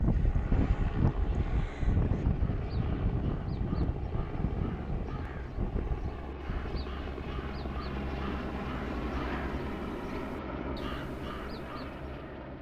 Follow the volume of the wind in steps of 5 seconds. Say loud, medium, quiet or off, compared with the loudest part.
loud, medium, off.